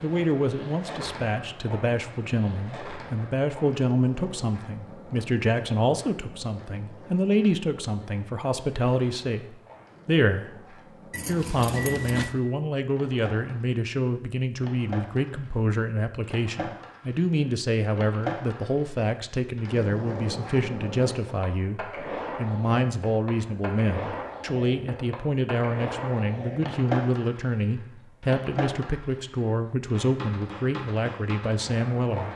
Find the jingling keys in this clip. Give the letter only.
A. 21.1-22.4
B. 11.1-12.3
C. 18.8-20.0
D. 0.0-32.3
B.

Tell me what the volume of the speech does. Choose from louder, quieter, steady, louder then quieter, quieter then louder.
steady.